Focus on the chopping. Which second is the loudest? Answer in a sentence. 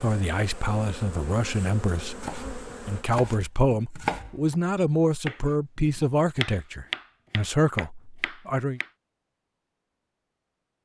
The volume of the chopping peaks at 4 seconds.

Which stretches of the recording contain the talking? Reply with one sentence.
The talking can be heard from 0.0 to 8.8 s.